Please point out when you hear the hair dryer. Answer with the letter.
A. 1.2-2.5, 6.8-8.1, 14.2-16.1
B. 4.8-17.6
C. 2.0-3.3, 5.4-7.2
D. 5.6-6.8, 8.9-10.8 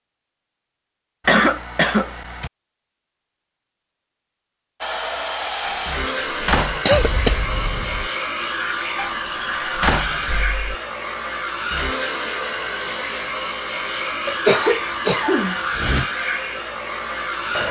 B.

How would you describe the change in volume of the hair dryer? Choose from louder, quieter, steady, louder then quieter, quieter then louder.
steady.